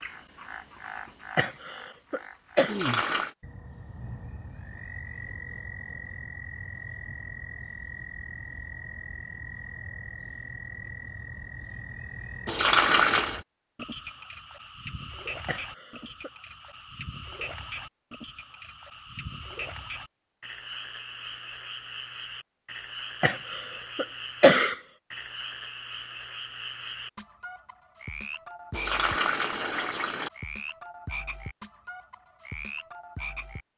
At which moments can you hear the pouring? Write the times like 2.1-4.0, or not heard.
2.6-3.4, 12.4-13.4, 28.7-30.3.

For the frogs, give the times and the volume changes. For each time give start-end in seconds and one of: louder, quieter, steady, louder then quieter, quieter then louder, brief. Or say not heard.
0.0-33.6 steady.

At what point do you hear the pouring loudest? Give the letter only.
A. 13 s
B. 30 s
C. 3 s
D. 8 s
A.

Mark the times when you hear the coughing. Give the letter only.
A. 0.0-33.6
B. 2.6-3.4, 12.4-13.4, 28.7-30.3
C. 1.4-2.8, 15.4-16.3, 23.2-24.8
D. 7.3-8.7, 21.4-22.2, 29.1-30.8
C.